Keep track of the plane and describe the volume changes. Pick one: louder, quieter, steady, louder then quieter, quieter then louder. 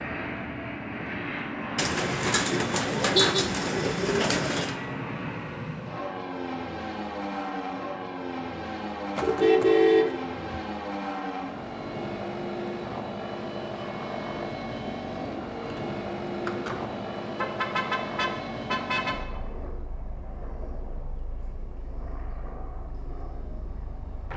quieter.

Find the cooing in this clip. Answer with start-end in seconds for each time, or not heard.
1.8-4.8, 15.2-17.1.